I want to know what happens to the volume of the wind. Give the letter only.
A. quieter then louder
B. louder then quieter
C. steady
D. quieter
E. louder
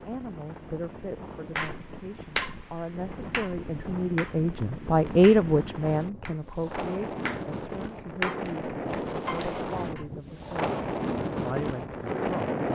E.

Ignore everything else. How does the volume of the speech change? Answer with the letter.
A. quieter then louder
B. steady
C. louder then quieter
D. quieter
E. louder
C.